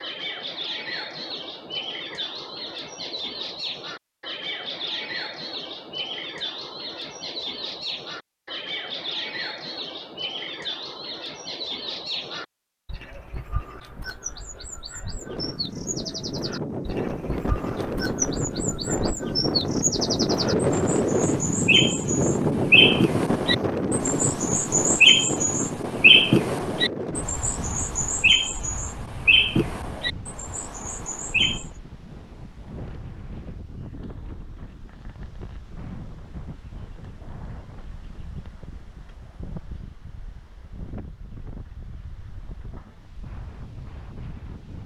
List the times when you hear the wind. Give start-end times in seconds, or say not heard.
15.1-44.8.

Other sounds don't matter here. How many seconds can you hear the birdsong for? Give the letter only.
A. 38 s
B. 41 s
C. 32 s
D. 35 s
C.